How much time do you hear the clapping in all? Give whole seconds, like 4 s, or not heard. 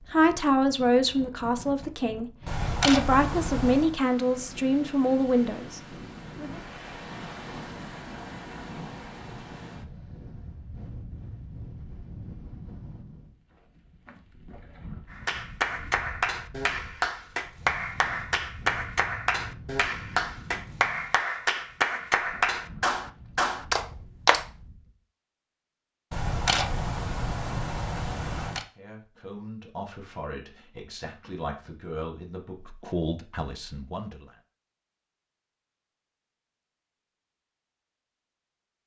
9 s.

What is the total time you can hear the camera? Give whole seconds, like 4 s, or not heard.
4 s.